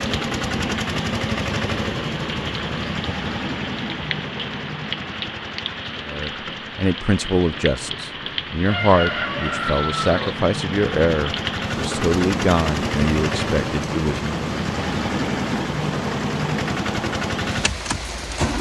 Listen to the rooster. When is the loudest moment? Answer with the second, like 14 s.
9 s.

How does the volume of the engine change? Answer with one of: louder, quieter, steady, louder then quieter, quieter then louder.
quieter then louder.